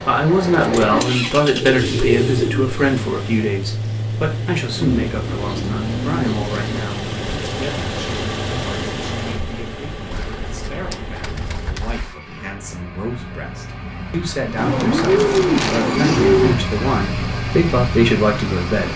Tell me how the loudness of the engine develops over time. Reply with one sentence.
The loudness of the engine goes down, then up.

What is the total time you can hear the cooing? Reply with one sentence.
The cooing can be heard for 8 seconds in total.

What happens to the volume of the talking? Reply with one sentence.
The volume of the talking goes down, then up.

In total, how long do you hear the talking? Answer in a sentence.
The talking can be heard for 19 seconds in total.